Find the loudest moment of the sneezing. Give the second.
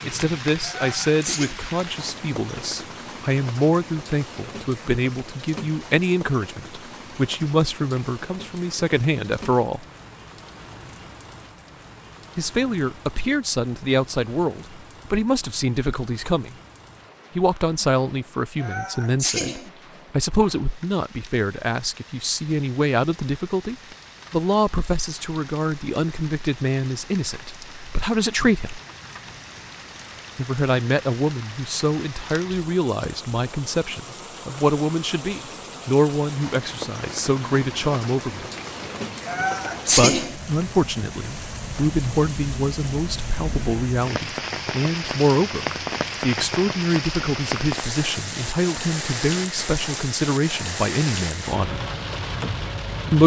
40 s.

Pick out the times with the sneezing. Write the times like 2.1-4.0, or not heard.
0.6-1.6, 18.6-19.7, 39.2-40.4.